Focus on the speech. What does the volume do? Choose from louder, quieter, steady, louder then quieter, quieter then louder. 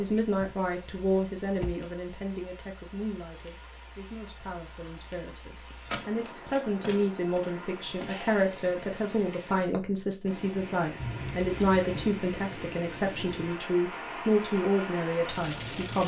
quieter then louder.